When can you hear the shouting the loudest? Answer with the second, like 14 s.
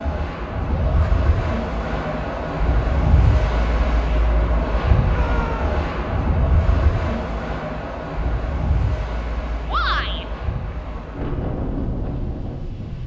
10 s.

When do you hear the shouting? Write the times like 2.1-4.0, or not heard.
0.7-1.1, 5.0-5.7, 9.7-10.2.